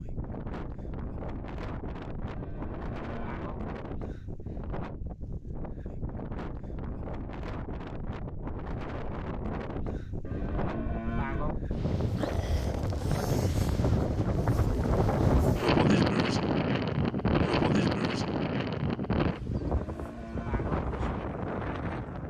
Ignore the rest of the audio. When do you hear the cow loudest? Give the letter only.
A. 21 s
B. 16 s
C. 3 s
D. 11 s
D.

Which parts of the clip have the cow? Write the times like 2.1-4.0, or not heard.
2.3-3.6, 10.2-11.6, 19.6-20.8.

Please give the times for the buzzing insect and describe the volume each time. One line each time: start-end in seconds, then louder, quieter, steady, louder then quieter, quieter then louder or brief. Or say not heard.
not heard.